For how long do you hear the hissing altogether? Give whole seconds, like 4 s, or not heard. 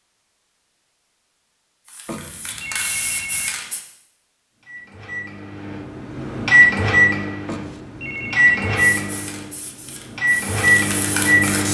5 s.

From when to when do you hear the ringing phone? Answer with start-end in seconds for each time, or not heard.
2.0-3.5, 7.5-8.9.